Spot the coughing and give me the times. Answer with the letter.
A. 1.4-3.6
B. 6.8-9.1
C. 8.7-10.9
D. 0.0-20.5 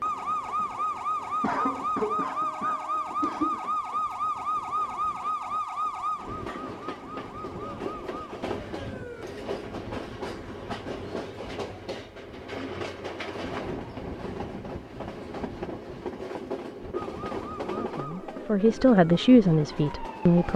A.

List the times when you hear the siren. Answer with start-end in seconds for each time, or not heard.
0.0-9.2, 16.9-20.5.